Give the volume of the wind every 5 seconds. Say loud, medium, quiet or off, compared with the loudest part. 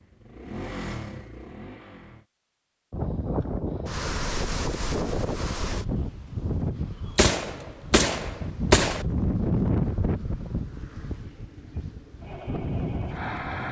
loud, loud, medium.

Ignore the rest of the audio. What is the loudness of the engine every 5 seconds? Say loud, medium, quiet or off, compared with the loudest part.
loud, off, loud.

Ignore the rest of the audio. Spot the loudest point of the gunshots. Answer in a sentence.
The volume of the gunshots peaks at 9 seconds.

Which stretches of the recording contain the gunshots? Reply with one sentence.
You can hear the gunshots from 7.2 to 9.1 s.